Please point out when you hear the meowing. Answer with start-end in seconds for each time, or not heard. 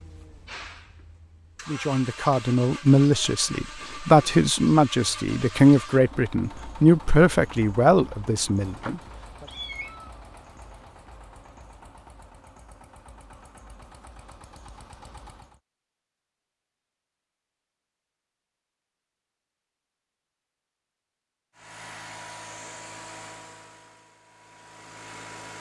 8.8-10.2.